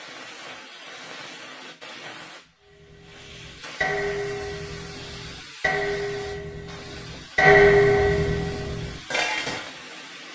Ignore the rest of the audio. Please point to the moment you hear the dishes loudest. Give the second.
8 s.